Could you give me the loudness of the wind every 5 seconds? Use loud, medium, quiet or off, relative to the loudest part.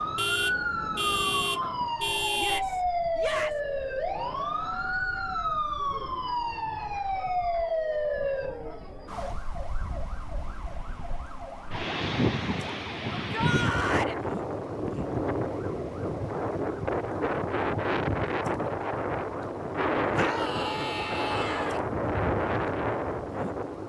quiet, quiet, loud, loud, loud.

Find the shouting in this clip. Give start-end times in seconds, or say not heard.
2.4-3.6, 13.1-14.2, 20.1-21.8.